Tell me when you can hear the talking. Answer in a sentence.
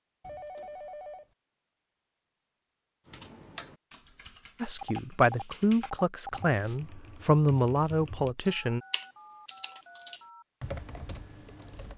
You can hear the talking from 4.6 to 8.8 s.